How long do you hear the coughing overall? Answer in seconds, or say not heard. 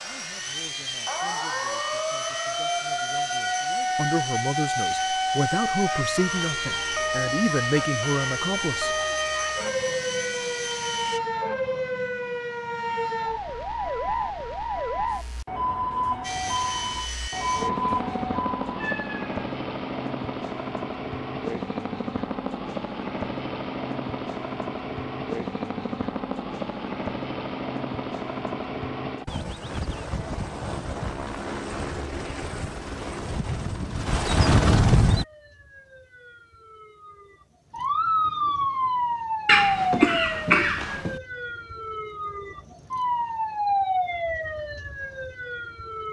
2 s.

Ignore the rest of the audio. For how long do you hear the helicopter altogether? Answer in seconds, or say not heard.
30 s.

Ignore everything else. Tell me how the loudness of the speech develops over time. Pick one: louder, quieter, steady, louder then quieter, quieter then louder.
louder.